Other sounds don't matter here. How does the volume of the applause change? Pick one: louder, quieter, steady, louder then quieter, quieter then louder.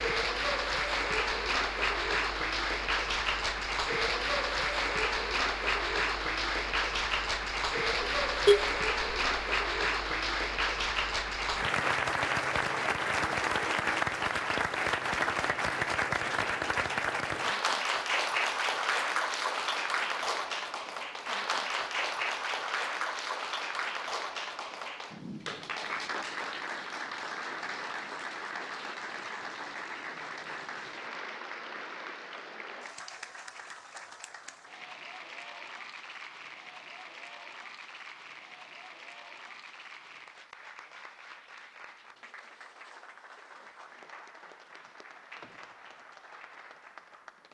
quieter.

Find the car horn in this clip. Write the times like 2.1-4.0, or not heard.
8.0-9.3.